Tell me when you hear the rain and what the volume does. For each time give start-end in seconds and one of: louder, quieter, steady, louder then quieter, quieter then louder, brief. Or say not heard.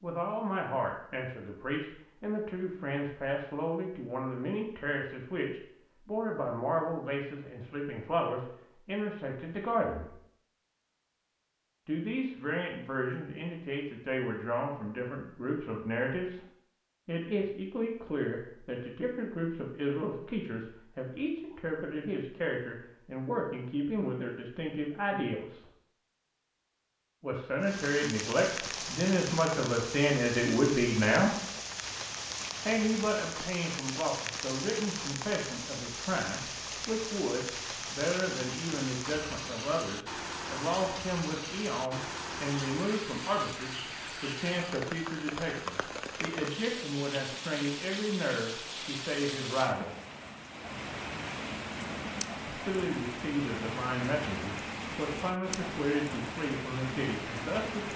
27.6-57.9 steady.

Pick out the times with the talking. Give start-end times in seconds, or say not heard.
0.0-10.2, 11.8-16.4, 17.1-25.6, 27.2-31.3, 32.6-50.0, 52.5-57.9.